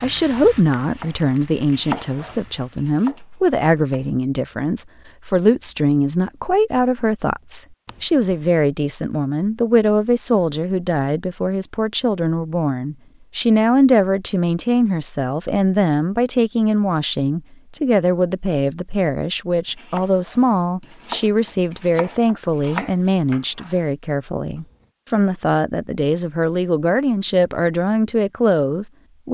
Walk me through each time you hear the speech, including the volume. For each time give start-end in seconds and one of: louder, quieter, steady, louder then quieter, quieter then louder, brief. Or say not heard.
0.0-29.2 steady.